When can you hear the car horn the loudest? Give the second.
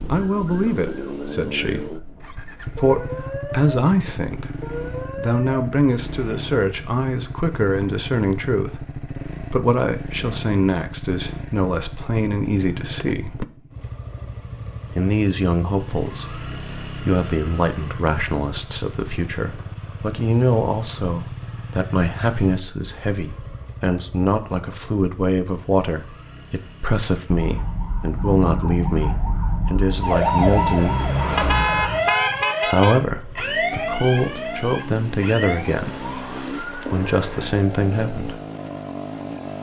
32 s.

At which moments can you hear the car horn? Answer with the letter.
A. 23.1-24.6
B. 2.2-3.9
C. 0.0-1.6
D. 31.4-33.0
D.